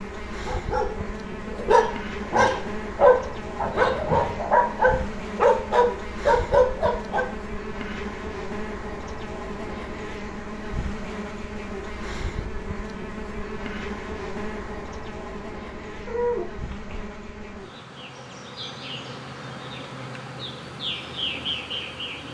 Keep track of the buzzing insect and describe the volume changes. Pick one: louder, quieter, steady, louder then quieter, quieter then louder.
steady.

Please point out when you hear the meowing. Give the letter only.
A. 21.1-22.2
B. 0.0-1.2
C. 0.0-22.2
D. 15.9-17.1
D.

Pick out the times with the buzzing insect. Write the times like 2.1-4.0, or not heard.
0.0-22.2.